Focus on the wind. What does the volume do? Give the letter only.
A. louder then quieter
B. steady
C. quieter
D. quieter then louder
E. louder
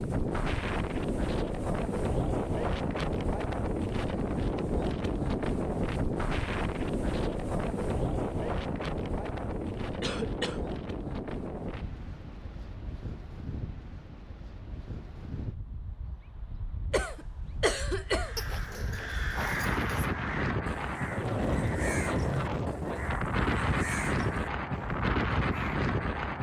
D.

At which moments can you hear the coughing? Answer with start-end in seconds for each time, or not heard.
10.0-10.6, 16.9-18.6.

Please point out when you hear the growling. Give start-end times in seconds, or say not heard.
18.4-20.1.